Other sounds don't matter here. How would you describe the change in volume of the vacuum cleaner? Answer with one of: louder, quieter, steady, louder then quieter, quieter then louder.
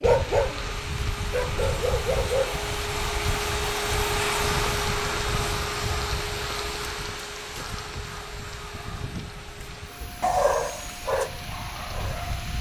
louder then quieter.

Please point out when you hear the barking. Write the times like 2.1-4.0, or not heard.
0.0-2.6, 10.2-12.5.